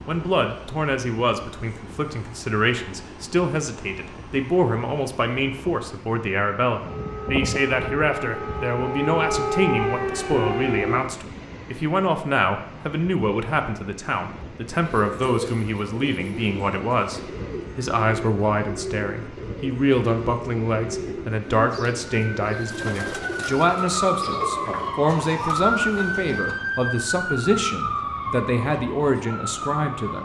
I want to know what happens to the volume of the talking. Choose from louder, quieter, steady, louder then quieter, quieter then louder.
steady.